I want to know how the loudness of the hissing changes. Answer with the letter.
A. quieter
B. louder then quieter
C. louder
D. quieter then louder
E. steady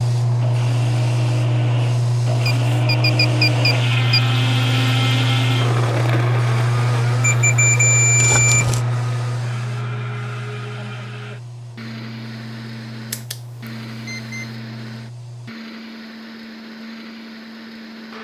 A.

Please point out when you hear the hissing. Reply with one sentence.
The hissing can be heard from 0.0 to 15.6 s.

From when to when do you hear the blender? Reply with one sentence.
The blender can be heard from 0.2 to 18.1 s.